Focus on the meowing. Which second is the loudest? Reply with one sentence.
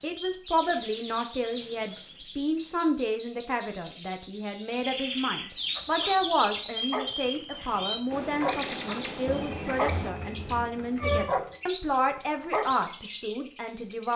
The loudest moment of the meowing is at 11 seconds.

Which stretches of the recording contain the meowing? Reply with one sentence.
You can hear the meowing from 9.2 to 11.2 s.